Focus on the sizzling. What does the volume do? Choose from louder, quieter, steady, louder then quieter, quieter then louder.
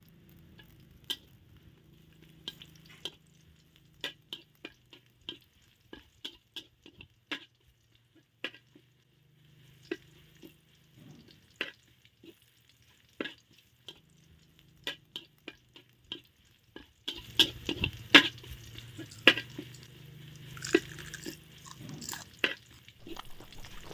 louder.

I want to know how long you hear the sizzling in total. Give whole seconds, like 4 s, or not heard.
24 s.